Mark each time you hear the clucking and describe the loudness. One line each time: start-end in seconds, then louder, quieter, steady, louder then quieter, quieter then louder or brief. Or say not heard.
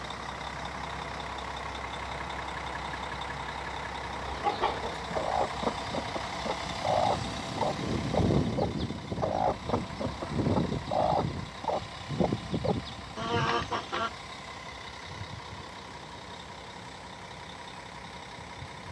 4.2-14.1 steady.